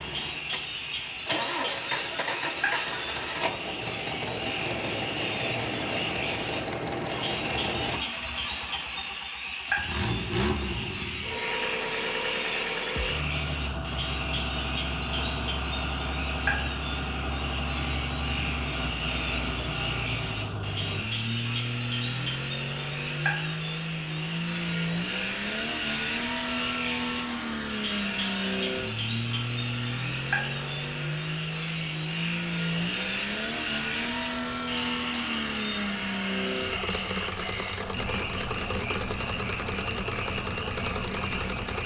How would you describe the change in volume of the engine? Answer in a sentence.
The loudness of the engine stays about the same.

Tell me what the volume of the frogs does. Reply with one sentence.
The volume of the frogs stays about the same.